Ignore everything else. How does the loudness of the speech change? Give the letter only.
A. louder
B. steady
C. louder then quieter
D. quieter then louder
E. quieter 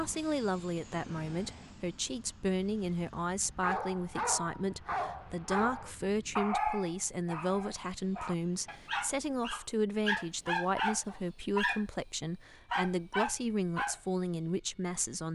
B.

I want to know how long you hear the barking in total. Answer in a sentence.
The barking can be heard for 10 seconds in total.